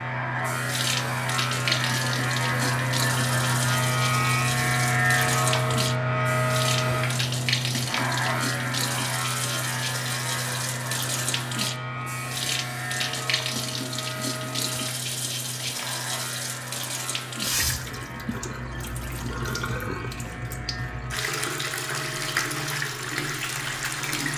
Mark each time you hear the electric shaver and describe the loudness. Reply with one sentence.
You can hear the electric shaver from 0.0 to 24.3 s, getting quieter.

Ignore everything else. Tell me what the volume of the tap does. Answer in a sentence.
The volume of the tap stays about the same.